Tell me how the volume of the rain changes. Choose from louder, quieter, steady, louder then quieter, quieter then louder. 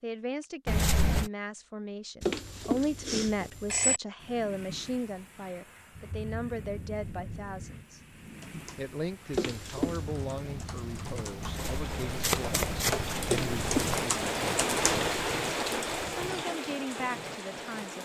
louder.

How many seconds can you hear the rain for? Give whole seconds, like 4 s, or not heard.
14 s.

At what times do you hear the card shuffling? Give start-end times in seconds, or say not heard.
0.7-1.3, 11.4-14.1.